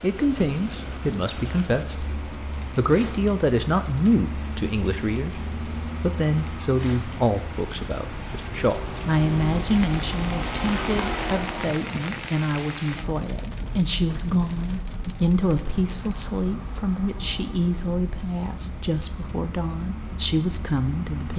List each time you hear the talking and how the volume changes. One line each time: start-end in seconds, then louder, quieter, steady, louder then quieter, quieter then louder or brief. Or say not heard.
0.0-21.3 steady.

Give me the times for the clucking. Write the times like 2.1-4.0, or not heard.
not heard.